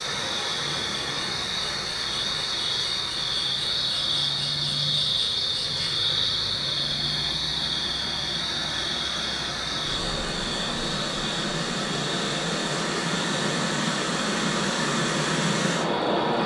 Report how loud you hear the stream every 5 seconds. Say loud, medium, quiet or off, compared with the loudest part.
medium, medium, loud, loud.